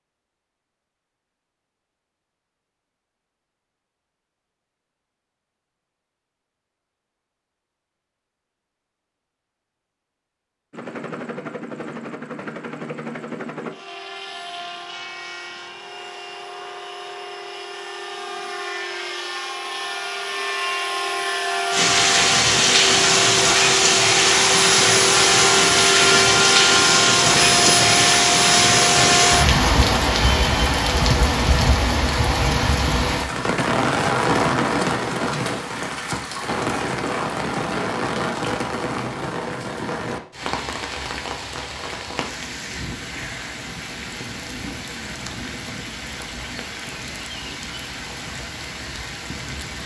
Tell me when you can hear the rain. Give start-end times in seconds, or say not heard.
21.7-49.8.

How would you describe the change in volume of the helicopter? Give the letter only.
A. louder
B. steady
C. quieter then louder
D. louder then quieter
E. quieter
A.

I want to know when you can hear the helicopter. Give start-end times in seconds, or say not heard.
10.7-29.4.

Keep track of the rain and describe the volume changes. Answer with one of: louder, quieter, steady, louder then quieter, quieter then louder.
quieter.